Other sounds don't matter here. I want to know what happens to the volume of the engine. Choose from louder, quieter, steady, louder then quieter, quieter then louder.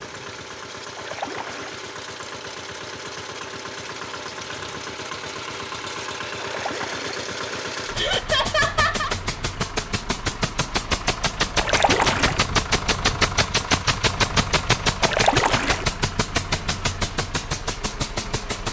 louder.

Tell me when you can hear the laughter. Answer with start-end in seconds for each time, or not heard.
8.0-9.2.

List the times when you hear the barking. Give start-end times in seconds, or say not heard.
not heard.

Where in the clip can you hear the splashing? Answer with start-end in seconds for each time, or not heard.
0.9-1.8, 6.4-7.2, 11.6-12.4, 15.0-15.8.